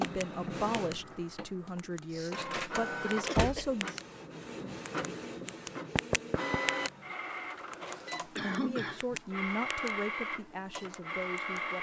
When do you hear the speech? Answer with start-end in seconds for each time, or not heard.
0.0-3.9, 8.4-11.7.